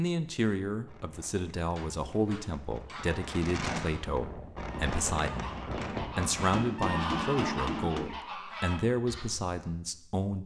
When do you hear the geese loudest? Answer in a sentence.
The volume of the geese peaks at 7 seconds.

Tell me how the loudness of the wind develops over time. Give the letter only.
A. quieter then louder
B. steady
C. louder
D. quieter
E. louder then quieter
C.